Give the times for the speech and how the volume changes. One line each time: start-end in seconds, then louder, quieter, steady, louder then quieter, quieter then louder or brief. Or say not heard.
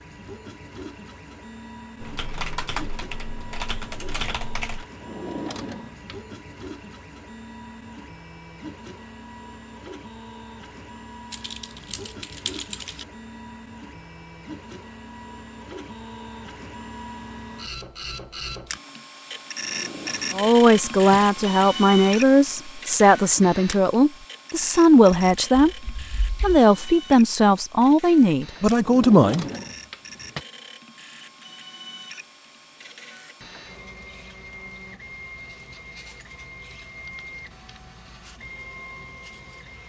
20.3-29.4 steady.